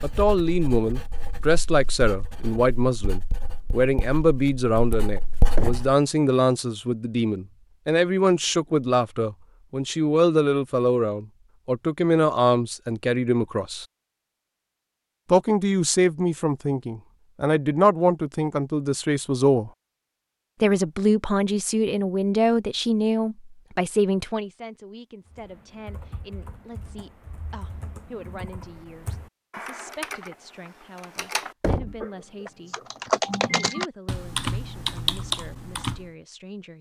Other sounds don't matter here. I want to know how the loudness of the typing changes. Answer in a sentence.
The loudness of the typing goes up.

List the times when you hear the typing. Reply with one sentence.
The typing can be heard from 25.2 to 36.0 s.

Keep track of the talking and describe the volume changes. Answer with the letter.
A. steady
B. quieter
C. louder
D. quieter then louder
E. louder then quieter
B.